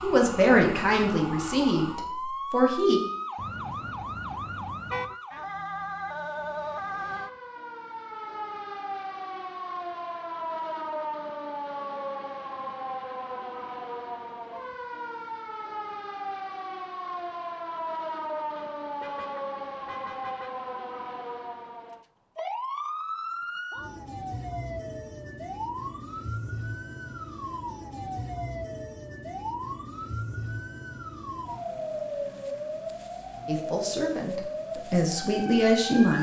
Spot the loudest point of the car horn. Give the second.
5 s.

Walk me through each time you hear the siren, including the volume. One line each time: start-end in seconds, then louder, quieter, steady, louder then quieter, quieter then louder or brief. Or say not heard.
0.0-36.1 steady.